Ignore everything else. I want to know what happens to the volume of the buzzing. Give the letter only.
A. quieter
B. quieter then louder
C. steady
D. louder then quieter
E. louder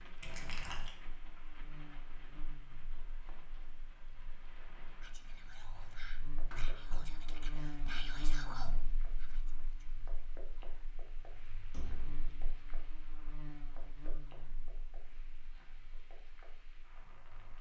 D.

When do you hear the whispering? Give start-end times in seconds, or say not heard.
5.0-9.8.